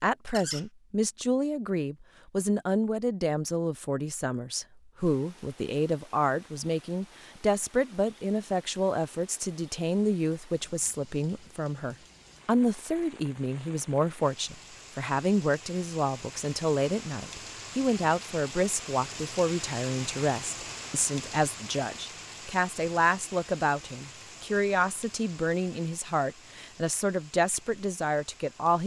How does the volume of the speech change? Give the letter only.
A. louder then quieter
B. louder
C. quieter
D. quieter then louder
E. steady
E.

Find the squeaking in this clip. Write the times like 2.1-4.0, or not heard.
0.2-0.7.